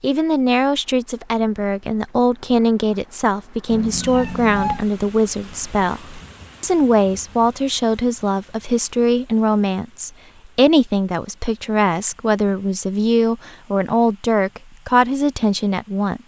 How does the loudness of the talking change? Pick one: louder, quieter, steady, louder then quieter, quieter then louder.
steady.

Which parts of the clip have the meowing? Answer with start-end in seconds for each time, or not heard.
3.7-4.8.